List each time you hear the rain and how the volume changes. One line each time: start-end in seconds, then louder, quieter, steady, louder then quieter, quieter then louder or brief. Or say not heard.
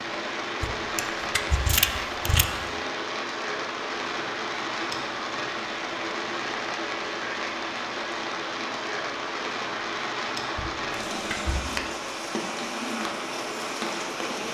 0.0-14.5 steady.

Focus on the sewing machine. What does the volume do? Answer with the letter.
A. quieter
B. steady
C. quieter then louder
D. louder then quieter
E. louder
B.